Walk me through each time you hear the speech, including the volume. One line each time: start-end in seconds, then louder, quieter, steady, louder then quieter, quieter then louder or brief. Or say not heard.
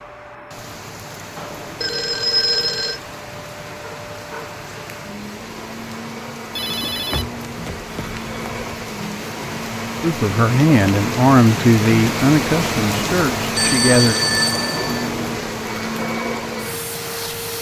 10.0-14.2 quieter.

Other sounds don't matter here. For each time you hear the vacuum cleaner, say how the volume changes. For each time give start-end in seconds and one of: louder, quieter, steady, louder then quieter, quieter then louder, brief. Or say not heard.
0.0-17.5 louder.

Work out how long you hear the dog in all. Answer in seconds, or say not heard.
not heard.